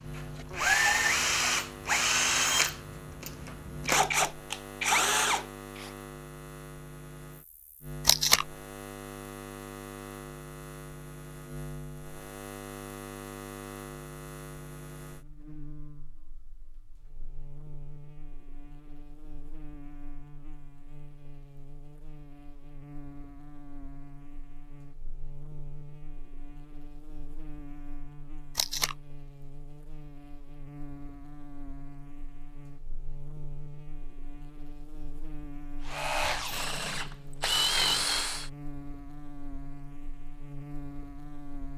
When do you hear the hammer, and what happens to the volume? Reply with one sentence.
The hammer can't be heard in this clip.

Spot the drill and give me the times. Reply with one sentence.
You can hear the drill from 0.0 to 5.9 s and from 35.9 to 38.5 s.